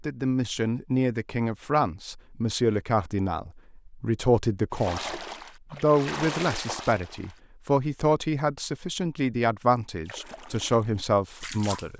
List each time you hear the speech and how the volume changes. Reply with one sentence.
The speech can be heard from 0.0 to 11.9 s, at a steady volume.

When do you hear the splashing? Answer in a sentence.
The splashing can be heard from 4.7 to 7.4 s and from 10.1 to 11.9 s.